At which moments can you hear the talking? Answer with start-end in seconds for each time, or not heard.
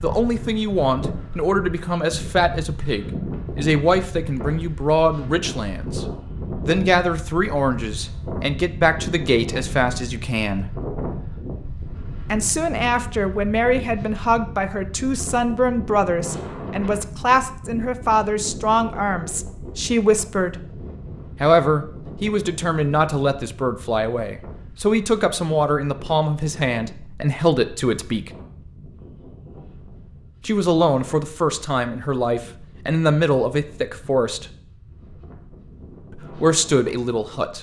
0.0-6.0, 6.7-10.7, 12.3-20.6, 21.4-28.3, 30.4-34.5, 36.1-37.5.